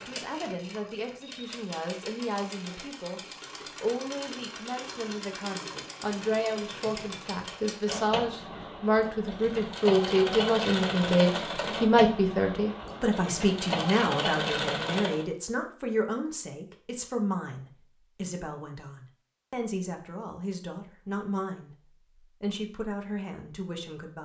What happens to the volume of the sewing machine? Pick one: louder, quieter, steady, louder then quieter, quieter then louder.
louder.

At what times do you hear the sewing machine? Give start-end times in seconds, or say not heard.
0.0-15.2.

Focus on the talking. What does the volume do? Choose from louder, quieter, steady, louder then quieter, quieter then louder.
louder then quieter.